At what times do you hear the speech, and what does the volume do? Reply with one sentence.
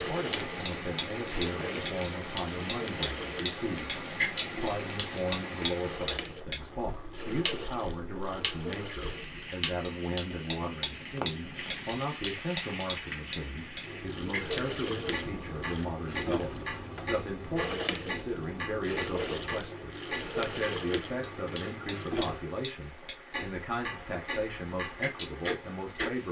The speech can be heard from 0.0 to 26.2 s, at a steady volume.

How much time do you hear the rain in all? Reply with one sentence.
The rain can be heard for 26 seconds in total.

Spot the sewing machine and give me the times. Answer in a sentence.
You can hear the sewing machine from 0.0 to 9.3 s and from 13.8 to 22.4 s.